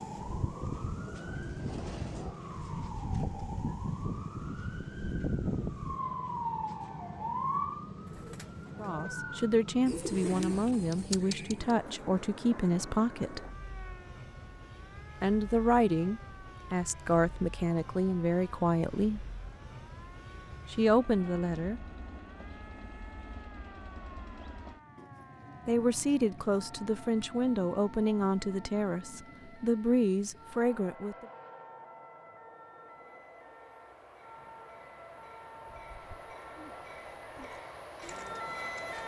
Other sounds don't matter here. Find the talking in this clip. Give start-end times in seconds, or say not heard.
8.8-13.4, 15.2-19.2, 20.7-21.8, 25.6-31.2.